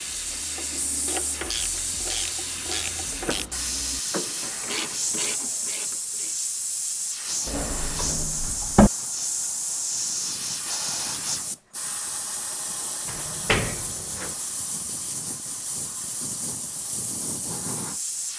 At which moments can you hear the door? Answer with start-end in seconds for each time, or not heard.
3.1-4.5, 7.5-8.9, 13.1-14.3.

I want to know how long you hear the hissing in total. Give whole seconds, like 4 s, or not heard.
18 s.